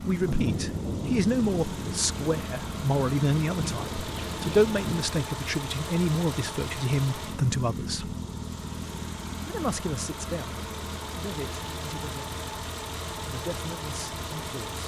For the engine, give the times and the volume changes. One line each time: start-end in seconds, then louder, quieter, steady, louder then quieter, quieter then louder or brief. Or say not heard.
0.0-14.8 steady.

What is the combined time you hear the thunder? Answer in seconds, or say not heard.
5 s.